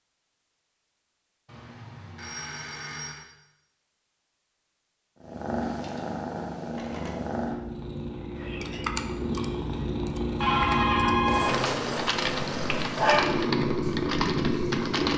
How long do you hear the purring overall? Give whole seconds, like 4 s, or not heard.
10 s.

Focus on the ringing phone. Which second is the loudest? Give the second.
11 s.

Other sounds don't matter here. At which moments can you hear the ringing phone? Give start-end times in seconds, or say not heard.
1.4-3.2, 6.7-7.2, 10.4-11.6.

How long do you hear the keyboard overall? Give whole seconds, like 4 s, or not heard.
7 s.